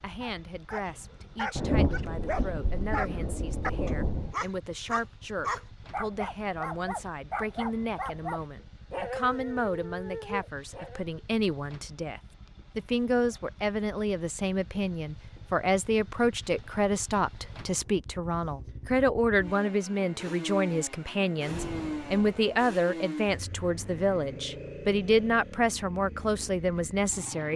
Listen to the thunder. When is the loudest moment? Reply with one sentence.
The volume of the thunder peaks at 2 seconds.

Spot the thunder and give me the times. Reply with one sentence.
The thunder can be heard from 1.6 to 4.3 s and from 21.4 to 22.8 s.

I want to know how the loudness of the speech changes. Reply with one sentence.
The loudness of the speech goes up.